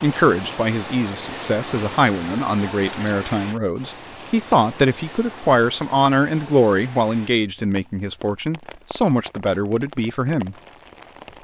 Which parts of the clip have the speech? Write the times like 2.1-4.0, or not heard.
0.0-10.6.